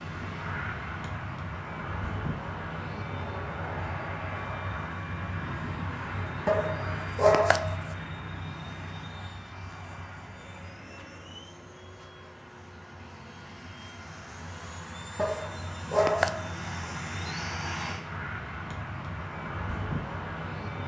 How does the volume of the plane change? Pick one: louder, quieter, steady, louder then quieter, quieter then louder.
quieter then louder.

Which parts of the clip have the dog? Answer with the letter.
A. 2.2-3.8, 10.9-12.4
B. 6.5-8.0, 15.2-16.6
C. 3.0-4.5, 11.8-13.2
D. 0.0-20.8
B.